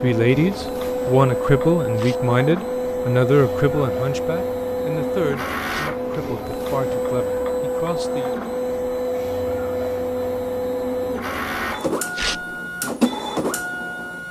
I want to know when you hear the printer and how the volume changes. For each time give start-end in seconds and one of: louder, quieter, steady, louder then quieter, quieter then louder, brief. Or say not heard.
0.0-14.2 steady.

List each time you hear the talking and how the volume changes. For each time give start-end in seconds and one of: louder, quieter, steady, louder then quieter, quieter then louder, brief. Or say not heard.
0.0-8.3 quieter.